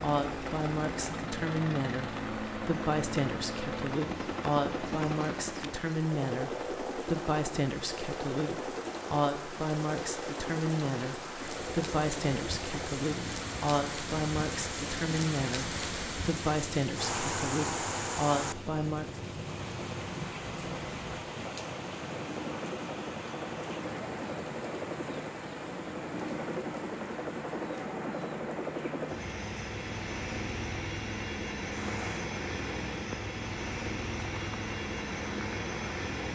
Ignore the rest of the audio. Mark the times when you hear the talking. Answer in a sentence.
You can hear the talking from 0.0 to 19.1 s.